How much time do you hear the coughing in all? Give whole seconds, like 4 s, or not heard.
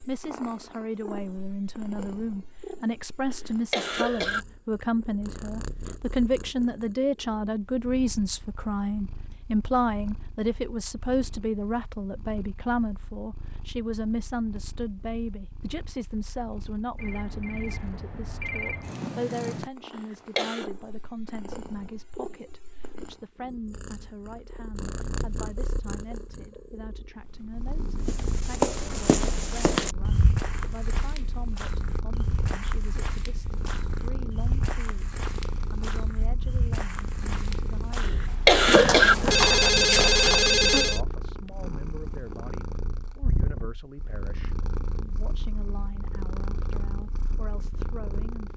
3 s.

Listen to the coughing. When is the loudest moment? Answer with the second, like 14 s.
39 s.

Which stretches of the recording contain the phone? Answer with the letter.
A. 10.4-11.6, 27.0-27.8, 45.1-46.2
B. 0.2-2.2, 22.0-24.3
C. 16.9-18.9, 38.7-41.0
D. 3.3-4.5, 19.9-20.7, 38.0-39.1
C.